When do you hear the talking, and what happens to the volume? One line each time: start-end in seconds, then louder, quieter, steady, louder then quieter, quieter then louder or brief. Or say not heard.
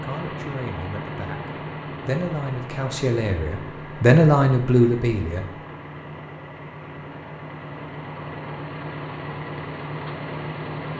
0.0-5.5 louder.